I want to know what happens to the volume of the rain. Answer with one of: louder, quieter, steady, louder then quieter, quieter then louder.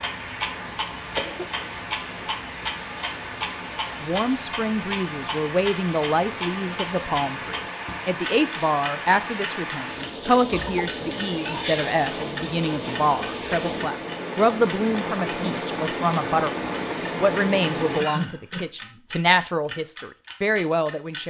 louder.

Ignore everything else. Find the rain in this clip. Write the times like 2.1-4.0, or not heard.
0.0-18.1.